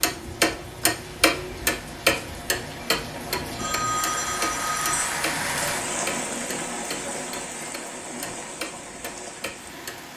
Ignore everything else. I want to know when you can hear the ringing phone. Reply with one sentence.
You can hear the ringing phone from 3.5 to 5.2 s.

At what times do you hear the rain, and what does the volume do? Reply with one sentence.
You can hear the rain from 0.0 to 10.1 s, getting louder then quieter.